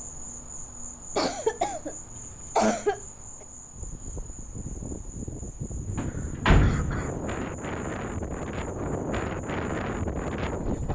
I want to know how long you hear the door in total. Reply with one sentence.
The door can be heard for 2 seconds in total.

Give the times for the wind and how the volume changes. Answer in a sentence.
The wind can be heard from 3.7 to 10.9 s, getting louder.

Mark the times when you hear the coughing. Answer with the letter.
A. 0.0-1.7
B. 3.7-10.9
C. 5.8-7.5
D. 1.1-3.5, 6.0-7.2
D.